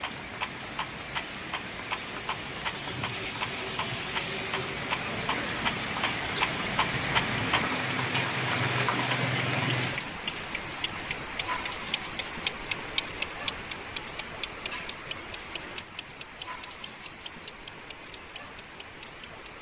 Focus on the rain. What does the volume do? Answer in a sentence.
The loudness of the rain goes up, then down.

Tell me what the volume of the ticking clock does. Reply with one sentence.
The loudness of the ticking clock goes up, then down.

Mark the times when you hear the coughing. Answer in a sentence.
You can't hear the coughing here.